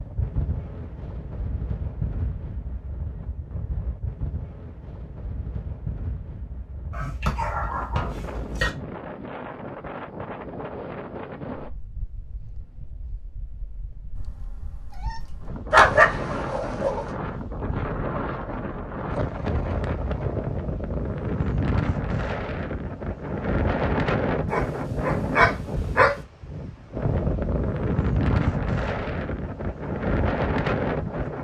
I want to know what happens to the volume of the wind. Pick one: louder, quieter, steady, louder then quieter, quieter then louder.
louder.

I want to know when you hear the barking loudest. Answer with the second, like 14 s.
16 s.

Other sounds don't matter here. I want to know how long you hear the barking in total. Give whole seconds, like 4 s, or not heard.
5 s.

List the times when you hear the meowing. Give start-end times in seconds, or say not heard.
14.2-15.5.